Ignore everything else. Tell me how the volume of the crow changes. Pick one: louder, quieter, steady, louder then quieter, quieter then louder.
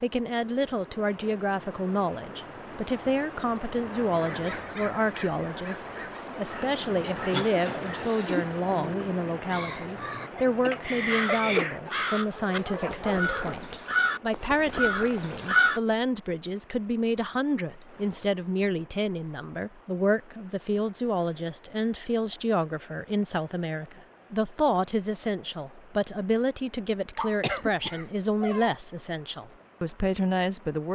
louder.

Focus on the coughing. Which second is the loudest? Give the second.
11 s.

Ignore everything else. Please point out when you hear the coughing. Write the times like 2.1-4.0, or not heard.
7.0-8.4, 10.3-11.8, 27.4-28.1.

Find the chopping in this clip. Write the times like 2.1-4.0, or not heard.
not heard.